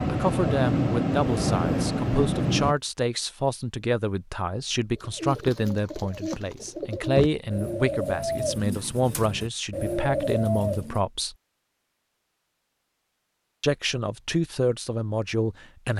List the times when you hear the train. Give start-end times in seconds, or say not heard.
0.0-2.8.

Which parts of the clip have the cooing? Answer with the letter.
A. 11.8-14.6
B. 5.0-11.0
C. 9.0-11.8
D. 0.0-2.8
B.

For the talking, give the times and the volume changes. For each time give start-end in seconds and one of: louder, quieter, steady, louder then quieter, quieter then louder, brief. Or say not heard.
0.1-11.3 steady
13.6-15.9 brief.